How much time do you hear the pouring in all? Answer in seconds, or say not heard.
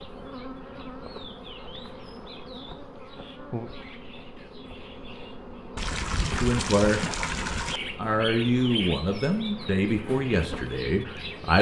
2 s.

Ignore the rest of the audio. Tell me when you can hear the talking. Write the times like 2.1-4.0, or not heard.
6.2-7.0, 8.0-11.5.